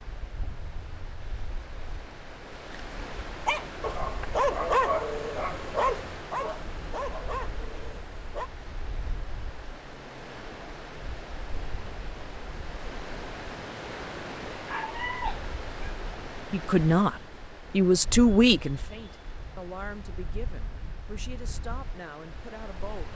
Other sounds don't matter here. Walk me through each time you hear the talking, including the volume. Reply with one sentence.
You can hear the talking from 16.5 to 23.1 s, getting quieter.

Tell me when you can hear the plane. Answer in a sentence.
The plane can't be heard in this clip.